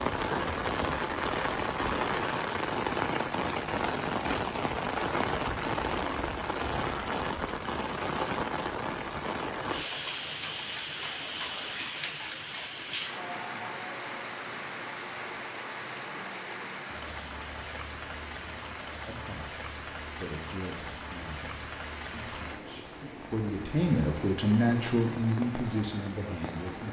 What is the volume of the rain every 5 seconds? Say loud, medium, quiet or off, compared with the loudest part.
loud, loud, medium, medium, medium, medium.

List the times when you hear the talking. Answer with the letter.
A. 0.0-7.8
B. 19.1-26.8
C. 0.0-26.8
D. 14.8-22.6
B.